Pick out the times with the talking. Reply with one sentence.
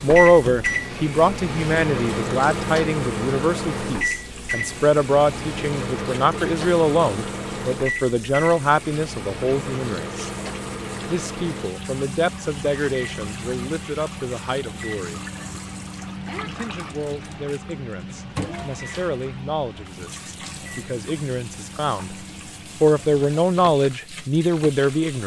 You can hear the talking from 0.0 to 10.3 s, from 11.1 to 15.2 s, from 16.4 to 22.1 s and from 22.8 to 25.2 s.